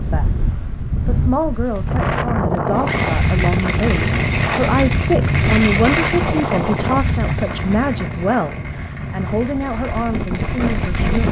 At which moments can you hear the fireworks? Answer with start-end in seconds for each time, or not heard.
2.8-11.2.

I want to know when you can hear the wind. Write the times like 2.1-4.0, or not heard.
0.0-11.2.